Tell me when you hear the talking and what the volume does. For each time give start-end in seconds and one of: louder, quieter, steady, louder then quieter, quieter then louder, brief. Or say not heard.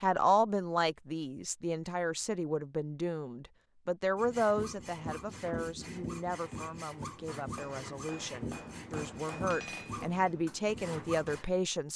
0.0-11.9 quieter then louder.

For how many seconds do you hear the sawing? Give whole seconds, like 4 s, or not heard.
7 s.